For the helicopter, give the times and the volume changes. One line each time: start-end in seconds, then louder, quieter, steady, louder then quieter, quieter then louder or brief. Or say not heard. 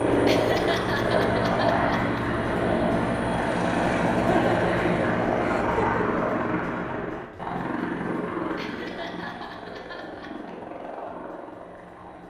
0.0-12.2 quieter.